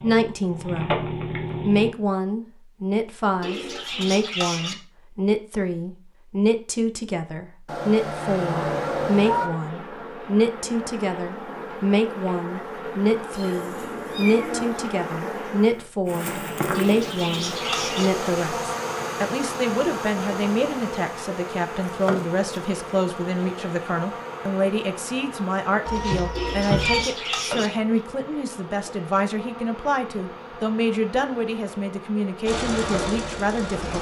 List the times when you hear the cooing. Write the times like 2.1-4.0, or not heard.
3.4-4.8, 16.7-18.1, 26.4-27.7.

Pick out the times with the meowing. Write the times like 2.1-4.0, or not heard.
7.7-9.5, 13.3-14.8, 25.9-27.1.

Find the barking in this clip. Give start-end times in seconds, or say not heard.
not heard.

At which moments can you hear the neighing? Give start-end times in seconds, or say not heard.
not heard.